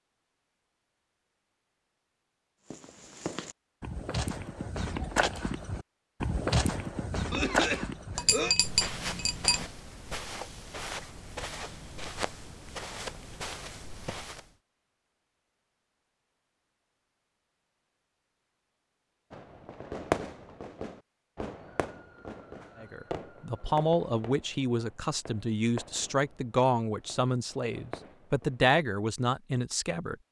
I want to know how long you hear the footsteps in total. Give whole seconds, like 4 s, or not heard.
12 s.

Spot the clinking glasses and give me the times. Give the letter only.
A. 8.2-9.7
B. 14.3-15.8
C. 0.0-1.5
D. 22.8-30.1
A.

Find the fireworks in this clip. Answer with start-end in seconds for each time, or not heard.
19.3-28.8.